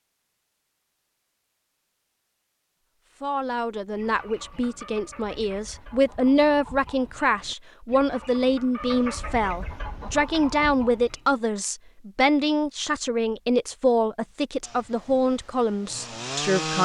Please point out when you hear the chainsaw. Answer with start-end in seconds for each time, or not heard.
14.6-16.8.